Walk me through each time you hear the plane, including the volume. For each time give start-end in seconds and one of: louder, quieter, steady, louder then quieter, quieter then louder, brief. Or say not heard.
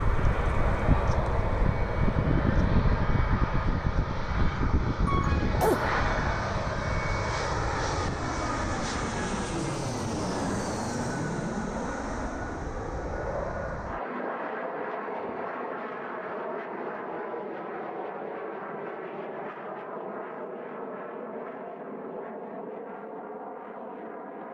0.0-24.4 quieter.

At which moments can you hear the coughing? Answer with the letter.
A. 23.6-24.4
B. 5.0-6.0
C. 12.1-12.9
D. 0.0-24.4
B.